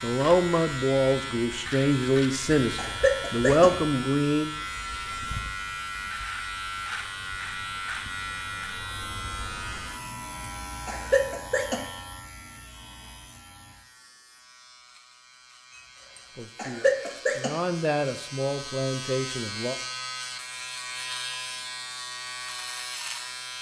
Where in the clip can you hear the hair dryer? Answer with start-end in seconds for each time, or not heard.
not heard.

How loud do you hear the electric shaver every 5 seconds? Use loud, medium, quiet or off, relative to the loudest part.
loud, loud, medium, medium, loud.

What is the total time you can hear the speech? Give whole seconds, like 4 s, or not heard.
8 s.